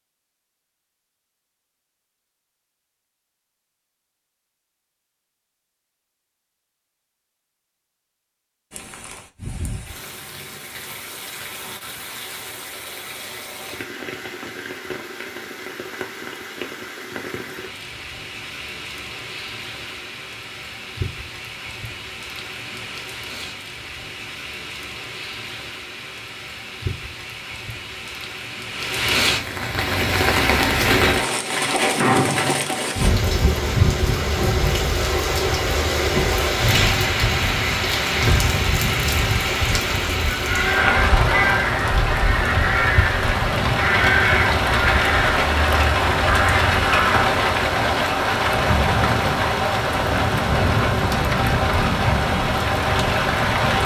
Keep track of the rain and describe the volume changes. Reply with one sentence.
The loudness of the rain goes up.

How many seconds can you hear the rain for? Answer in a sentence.
The rain can be heard for 45 seconds in total.